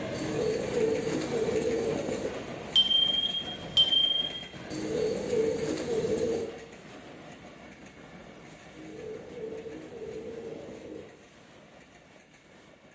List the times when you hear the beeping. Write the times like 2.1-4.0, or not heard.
2.8-4.3.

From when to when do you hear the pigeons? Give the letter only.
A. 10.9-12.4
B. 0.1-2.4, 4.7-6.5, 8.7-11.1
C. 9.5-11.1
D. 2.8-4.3
B.